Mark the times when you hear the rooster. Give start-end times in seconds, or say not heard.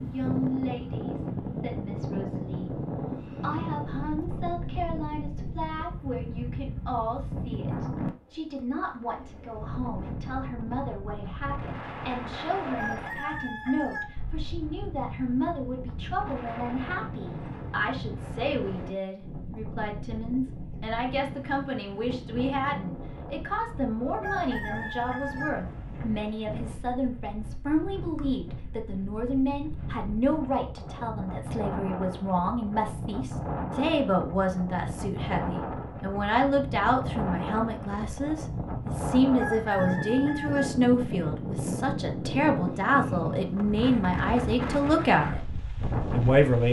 12.6-14.1, 24.0-25.5, 39.2-40.6.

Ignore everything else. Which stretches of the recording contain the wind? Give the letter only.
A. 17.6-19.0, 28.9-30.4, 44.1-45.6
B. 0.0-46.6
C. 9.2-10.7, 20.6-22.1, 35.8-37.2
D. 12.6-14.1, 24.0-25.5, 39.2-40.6
B.